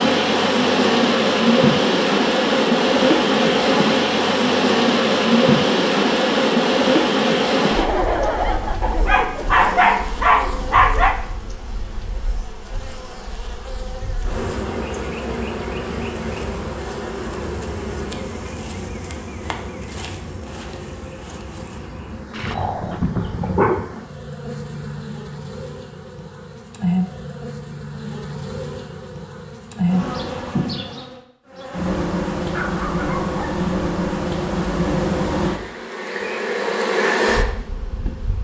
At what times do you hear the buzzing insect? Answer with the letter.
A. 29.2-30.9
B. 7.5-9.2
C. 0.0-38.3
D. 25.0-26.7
C.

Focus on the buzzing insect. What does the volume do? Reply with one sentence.
The loudness of the buzzing insect goes down, then up.